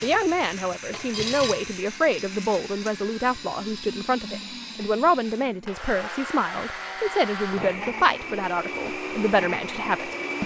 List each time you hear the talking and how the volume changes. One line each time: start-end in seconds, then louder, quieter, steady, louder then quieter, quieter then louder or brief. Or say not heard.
0.0-10.4 steady.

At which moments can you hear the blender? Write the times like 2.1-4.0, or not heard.
0.0-10.4.